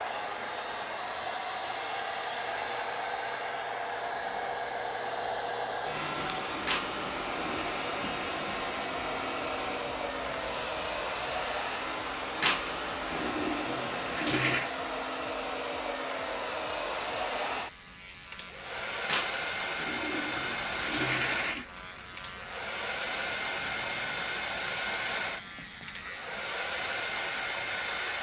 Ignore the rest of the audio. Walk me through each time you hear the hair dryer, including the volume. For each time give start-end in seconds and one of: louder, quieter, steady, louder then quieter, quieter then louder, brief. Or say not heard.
0.0-28.1 steady.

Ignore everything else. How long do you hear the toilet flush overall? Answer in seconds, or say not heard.
6 s.